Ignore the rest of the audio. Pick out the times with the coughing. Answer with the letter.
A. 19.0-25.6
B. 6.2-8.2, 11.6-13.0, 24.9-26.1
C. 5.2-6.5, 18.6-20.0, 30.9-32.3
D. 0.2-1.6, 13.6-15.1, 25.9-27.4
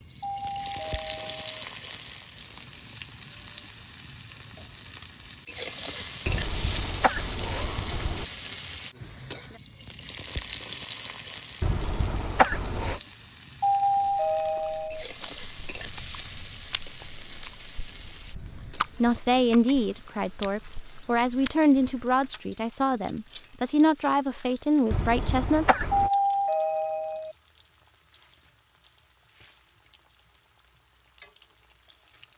B.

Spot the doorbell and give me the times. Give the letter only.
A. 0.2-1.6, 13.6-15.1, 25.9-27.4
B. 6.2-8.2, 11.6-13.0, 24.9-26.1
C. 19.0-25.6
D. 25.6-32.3
A.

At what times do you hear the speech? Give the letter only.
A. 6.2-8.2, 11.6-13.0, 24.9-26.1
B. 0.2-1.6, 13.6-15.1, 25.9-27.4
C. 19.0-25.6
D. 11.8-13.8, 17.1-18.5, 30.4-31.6
C.